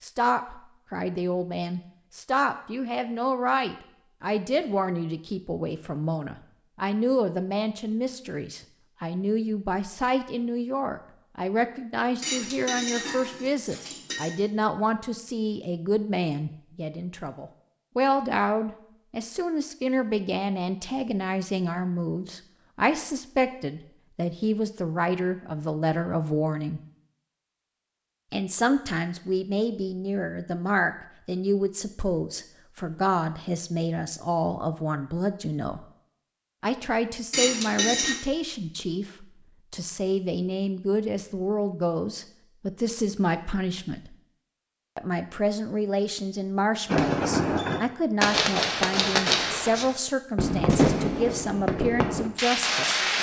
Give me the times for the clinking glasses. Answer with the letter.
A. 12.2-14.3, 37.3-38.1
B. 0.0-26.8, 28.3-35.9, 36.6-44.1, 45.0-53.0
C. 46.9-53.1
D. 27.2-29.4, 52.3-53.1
A.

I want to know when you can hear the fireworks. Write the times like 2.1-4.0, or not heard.
46.9-53.1.